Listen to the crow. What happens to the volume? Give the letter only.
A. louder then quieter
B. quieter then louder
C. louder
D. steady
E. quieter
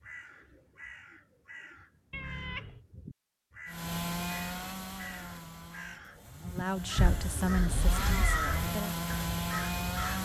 C.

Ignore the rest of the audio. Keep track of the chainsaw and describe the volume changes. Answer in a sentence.
The volume of the chainsaw goes down, then up.